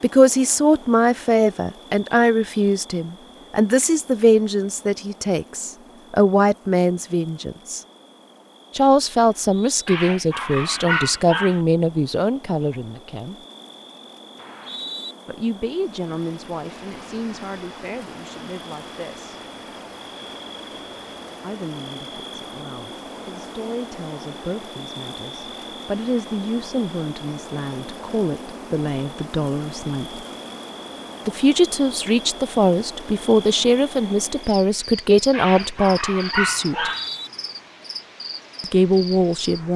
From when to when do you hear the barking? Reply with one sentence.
You can hear the barking from 9.8 to 11.6 s and from 35.3 to 37.0 s.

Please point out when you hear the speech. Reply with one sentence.
The speech can be heard from 0.0 to 7.8 s, from 8.8 to 13.3 s, from 15.2 to 19.4 s, from 21.4 to 30.2 s, from 31.2 to 36.9 s and from 38.6 to 39.7 s.